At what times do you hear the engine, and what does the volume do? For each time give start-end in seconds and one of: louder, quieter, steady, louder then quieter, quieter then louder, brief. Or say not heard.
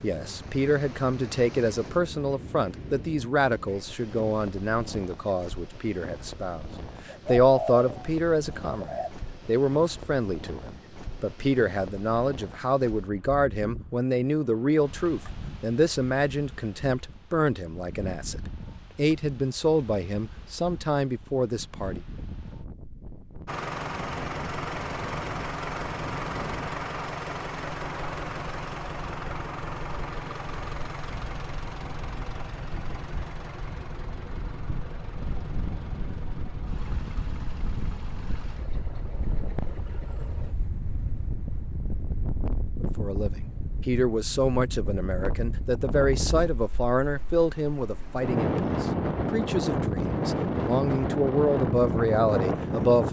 23.4-40.5 quieter.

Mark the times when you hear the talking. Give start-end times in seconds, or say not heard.
0.0-22.0, 42.8-53.0.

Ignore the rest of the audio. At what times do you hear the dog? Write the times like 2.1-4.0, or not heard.
not heard.